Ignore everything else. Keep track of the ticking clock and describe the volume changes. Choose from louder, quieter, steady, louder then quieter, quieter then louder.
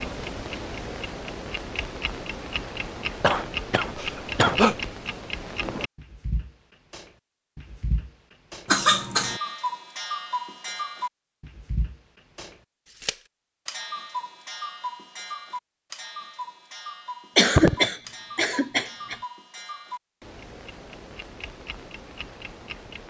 quieter.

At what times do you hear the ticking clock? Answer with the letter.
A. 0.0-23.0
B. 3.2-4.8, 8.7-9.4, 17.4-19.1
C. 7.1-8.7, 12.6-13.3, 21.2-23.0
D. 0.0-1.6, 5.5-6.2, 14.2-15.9
A.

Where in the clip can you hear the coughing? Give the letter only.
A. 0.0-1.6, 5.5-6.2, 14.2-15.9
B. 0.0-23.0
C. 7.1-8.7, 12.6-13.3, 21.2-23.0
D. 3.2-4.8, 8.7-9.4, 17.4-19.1
D.